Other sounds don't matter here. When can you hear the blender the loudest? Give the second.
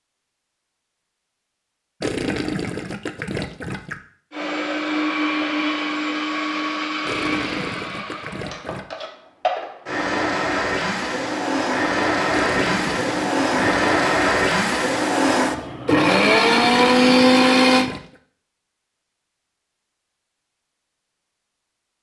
17 s.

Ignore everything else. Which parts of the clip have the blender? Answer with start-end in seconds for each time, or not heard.
4.3-17.9.